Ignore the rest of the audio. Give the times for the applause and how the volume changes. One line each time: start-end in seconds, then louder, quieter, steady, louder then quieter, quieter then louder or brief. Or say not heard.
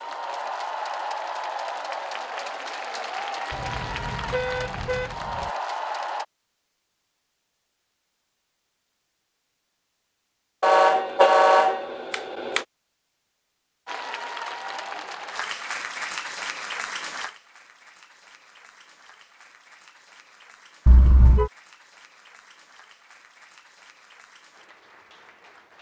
0.0-6.2 steady
13.8-25.7 quieter.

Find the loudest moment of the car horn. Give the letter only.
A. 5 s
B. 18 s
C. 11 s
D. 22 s
C.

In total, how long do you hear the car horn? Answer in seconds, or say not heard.
5 s.